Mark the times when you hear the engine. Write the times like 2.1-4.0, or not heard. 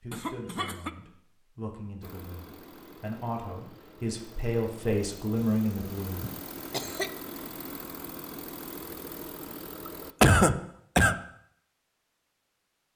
2.0-10.2.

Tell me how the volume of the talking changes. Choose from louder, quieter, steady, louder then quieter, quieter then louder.
louder.